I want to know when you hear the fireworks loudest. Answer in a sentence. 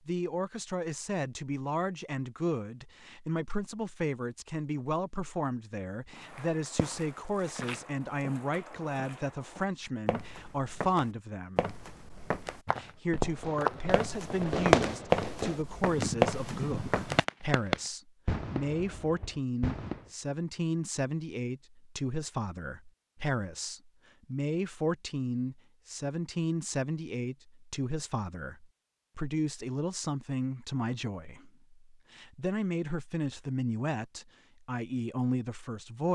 The volume of the fireworks peaks at 15 seconds.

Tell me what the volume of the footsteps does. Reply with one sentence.
The loudness of the footsteps goes up.